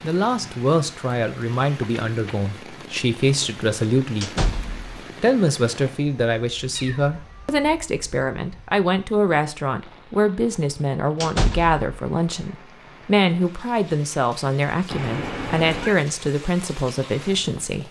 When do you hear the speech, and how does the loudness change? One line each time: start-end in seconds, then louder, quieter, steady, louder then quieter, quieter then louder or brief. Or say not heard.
0.0-17.8 steady.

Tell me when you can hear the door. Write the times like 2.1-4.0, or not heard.
4.2-5.0, 11.2-11.9.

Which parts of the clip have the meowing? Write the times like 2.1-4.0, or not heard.
1.8-2.5, 6.8-7.5, 14.9-15.9.